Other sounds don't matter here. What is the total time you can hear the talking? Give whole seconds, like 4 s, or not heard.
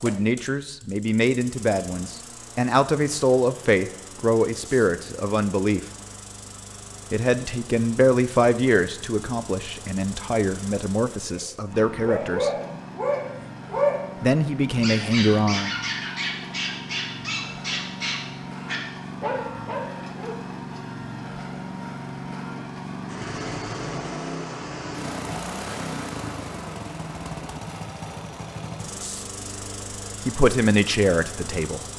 14 s.